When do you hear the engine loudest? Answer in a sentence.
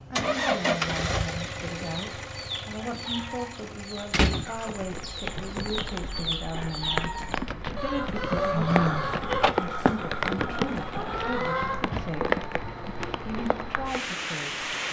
The loudest moment of the engine is at 1 second.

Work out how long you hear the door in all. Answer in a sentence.
The door can be heard for 3 seconds in total.